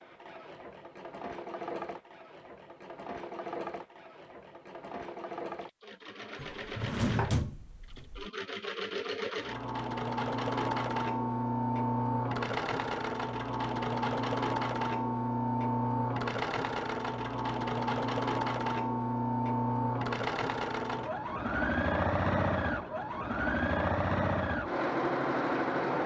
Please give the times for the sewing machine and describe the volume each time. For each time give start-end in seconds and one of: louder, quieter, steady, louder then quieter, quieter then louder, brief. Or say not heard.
0.0-26.0 louder.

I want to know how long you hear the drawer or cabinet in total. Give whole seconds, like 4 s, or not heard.
2 s.